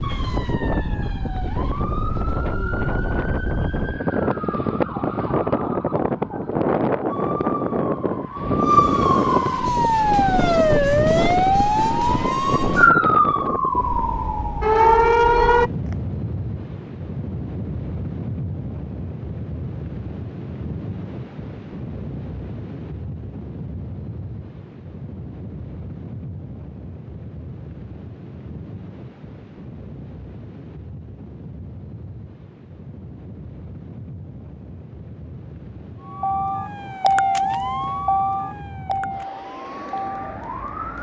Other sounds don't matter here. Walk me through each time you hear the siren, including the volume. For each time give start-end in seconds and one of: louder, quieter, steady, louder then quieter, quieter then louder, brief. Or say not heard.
0.0-15.9 louder
36.0-40.9 quieter.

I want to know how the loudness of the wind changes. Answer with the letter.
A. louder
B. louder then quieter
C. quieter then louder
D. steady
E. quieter
E.